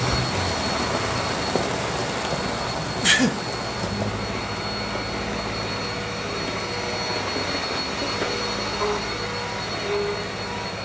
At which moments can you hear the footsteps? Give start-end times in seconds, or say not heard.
not heard.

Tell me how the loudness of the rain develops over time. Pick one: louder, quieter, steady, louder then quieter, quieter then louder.
quieter.